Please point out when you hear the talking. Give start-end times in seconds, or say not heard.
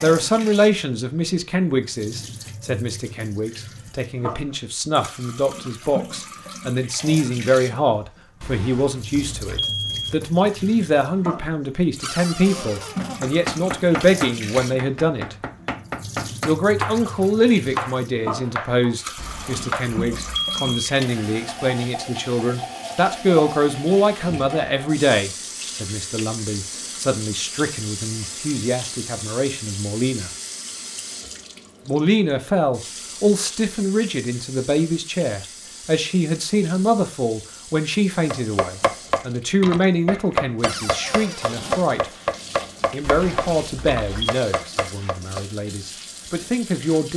0.0-15.3, 16.4-30.3, 31.9-42.1, 42.9-47.1.